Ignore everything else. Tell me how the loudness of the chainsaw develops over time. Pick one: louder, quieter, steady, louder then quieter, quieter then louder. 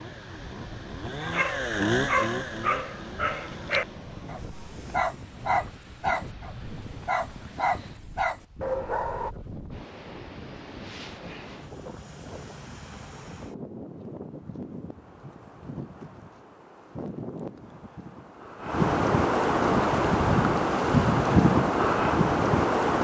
louder then quieter.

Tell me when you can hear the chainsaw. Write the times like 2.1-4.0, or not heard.
0.0-4.0.